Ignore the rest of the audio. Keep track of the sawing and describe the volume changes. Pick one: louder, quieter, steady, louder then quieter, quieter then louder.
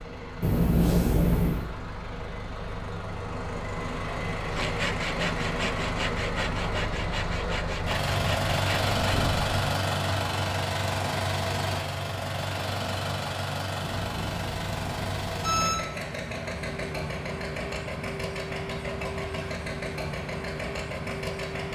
steady.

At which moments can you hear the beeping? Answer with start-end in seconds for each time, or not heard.
0.4-1.6, 13.8-15.8.